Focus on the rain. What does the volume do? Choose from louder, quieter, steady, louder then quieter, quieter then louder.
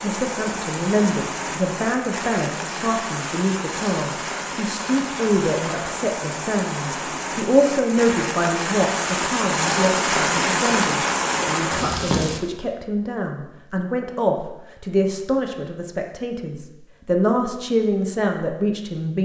louder.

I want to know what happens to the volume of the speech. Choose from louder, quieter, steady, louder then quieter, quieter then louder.
steady.